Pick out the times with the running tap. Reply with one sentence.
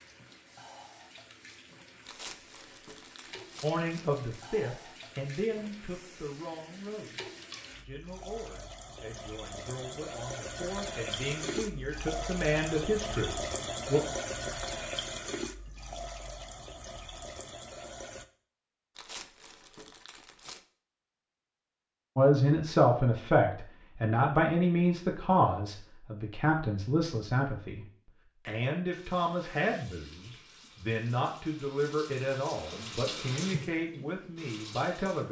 You can hear the running tap from 0.0 to 18.2 s and from 28.9 to 35.2 s.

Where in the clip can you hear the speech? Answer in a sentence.
You can hear the speech from 3.6 to 14.0 s, from 22.1 to 27.9 s and from 28.4 to 35.2 s.